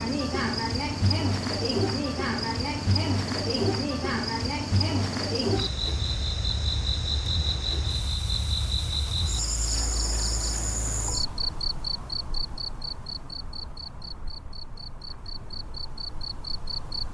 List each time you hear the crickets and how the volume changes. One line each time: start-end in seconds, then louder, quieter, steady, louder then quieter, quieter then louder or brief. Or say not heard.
0.0-17.0 quieter.